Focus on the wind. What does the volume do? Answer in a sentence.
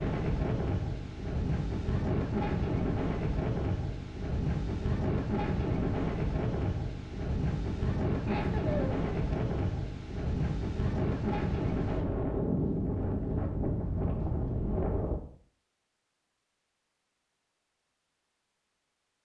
The volume of the wind stays about the same.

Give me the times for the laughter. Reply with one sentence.
You can hear the laughter from 8.2 to 9.3 s.